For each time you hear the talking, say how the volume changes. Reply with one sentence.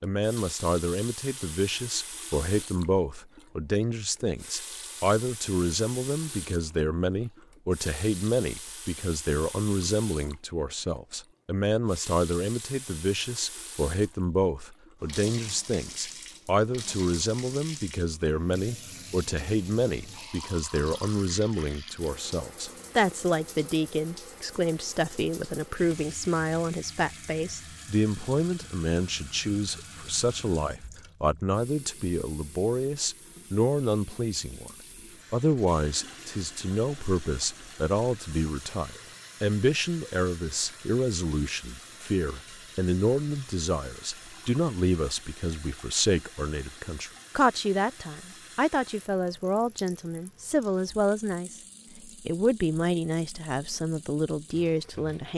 You can hear the talking from 0.0 to 55.3 s, at a steady volume.